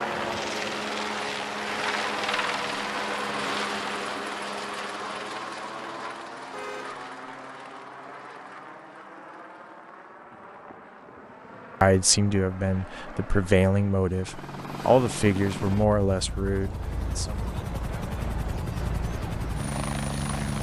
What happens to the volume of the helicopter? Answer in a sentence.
The volume of the helicopter goes down, then up.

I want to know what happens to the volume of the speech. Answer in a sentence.
The volume of the speech goes up, then down.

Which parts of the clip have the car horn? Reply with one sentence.
The car horn can be heard from 6.5 to 7.0 s.